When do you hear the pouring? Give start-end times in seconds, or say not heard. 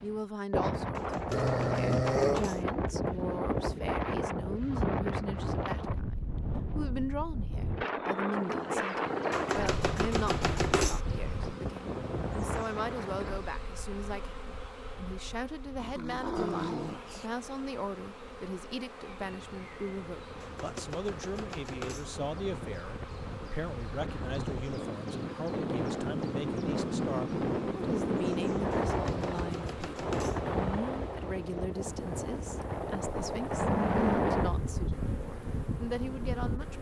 not heard.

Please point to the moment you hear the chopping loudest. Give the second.
11 s.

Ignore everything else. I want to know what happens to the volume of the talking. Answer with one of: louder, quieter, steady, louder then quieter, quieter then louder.
steady.